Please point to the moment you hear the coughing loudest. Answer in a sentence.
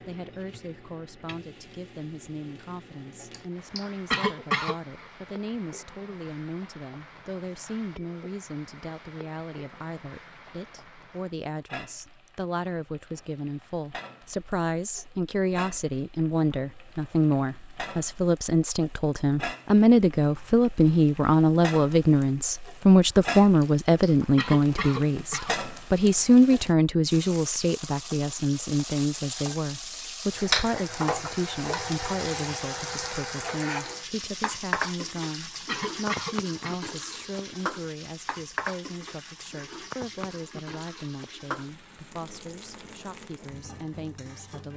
The volume of the coughing peaks at 4 seconds.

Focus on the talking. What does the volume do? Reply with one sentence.
The volume of the talking goes up, then down.